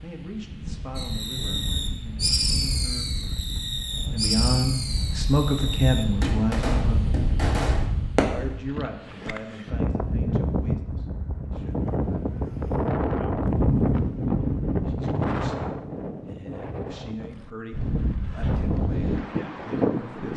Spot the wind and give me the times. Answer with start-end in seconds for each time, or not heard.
0.0-20.3.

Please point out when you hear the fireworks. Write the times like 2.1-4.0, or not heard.
0.9-8.2.